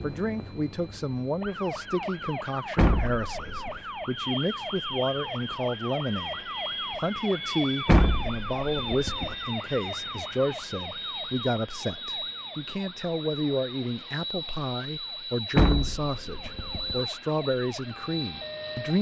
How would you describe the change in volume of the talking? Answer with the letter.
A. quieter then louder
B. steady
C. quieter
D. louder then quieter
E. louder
B.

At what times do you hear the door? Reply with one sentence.
You can hear the door from 2.8 to 3.8 s, from 7.8 to 9.3 s and from 15.6 to 17.0 s.